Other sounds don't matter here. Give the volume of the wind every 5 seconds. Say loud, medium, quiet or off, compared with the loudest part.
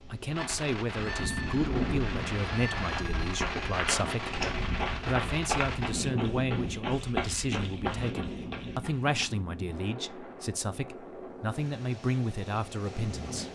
loud, loud, medium.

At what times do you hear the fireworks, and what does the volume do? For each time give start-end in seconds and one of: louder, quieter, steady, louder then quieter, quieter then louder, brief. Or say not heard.
0.3-5.9 steady.